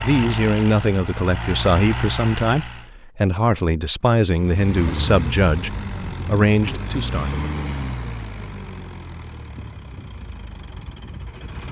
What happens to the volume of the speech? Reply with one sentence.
The volume of the speech stays about the same.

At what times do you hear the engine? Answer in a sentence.
You can hear the engine from 0.0 to 2.9 s and from 4.3 to 11.6 s.